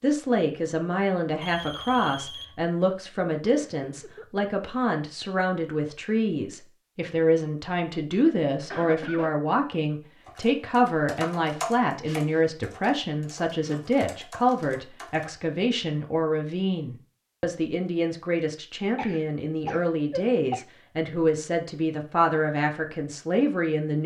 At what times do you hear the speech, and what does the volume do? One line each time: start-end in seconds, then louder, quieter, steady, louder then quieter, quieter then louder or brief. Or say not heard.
0.0-24.0 steady.